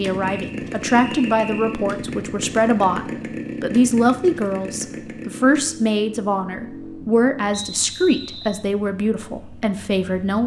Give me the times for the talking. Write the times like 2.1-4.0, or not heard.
0.0-10.4.